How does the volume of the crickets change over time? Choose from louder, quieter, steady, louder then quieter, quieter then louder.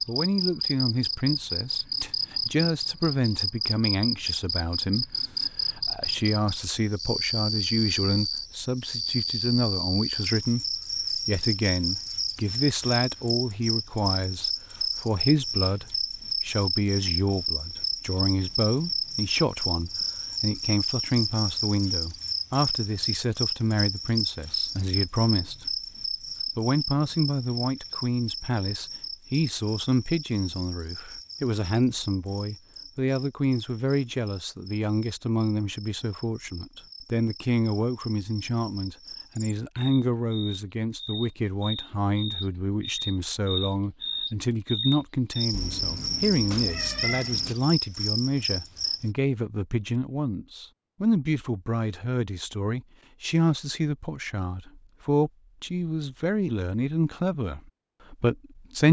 quieter then louder.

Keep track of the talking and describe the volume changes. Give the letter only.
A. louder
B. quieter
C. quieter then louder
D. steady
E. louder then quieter
D.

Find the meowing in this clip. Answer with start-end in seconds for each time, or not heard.
45.5-47.5.